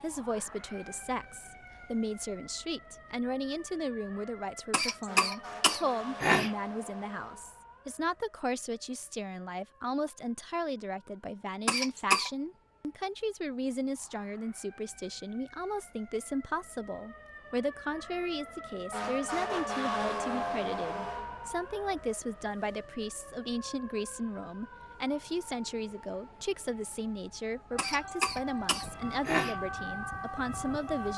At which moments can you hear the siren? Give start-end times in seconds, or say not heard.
0.0-31.1.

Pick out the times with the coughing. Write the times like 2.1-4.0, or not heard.
4.7-6.5, 11.7-12.3, 27.8-29.6.